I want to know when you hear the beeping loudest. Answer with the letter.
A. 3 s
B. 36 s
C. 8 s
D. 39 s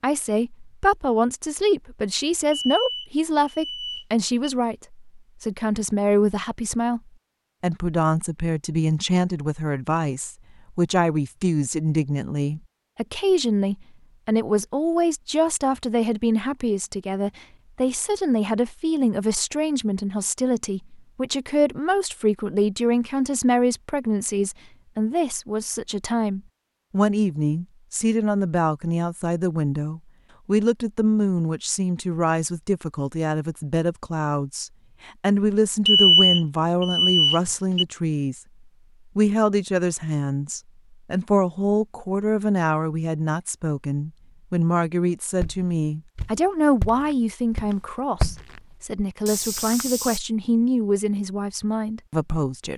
B.